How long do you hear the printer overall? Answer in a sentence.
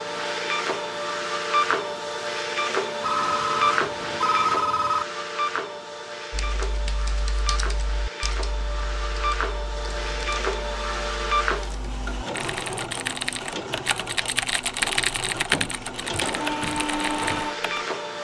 You can hear the printer for 18 seconds altogether.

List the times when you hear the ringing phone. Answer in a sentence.
You can hear the ringing phone from 3.0 to 5.0 s.